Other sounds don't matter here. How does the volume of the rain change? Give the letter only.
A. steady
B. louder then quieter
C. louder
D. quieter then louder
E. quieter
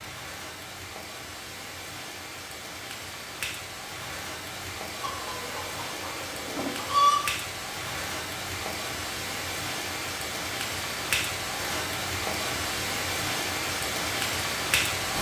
C.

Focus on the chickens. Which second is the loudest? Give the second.
7 s.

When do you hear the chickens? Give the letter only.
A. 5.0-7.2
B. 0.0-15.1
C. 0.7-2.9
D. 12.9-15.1
A.